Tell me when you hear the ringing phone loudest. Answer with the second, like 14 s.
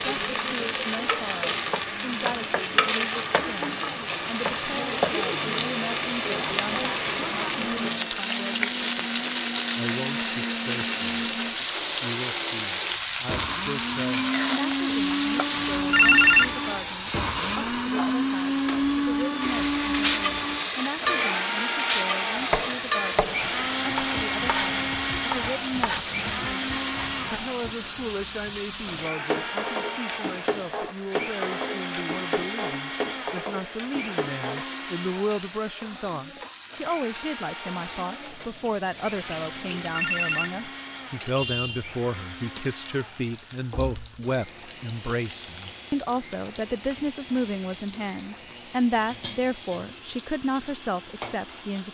16 s.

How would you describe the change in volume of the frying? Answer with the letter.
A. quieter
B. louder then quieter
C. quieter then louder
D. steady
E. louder
A.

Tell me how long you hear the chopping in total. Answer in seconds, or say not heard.
5 s.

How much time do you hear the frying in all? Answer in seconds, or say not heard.
52 s.